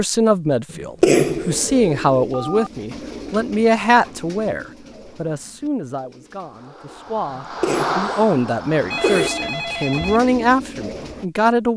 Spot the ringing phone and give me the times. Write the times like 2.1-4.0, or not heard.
2.3-2.7, 8.4-10.2.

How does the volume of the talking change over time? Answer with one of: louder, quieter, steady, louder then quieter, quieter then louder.
quieter then louder.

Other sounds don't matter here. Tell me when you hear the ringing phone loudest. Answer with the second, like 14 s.
9 s.